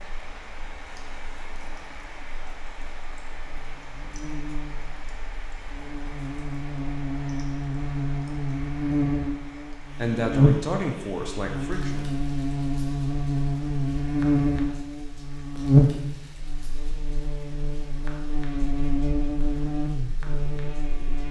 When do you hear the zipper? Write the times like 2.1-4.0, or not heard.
not heard.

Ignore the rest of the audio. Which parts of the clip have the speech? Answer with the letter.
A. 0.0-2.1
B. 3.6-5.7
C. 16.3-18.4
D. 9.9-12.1
D.